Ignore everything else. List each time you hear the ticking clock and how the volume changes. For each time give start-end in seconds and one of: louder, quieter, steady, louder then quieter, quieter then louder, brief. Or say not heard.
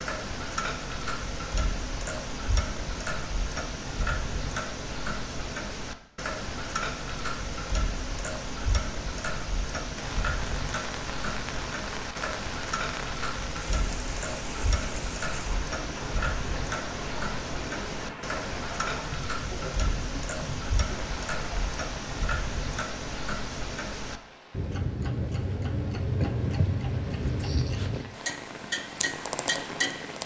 0.0-30.2 steady.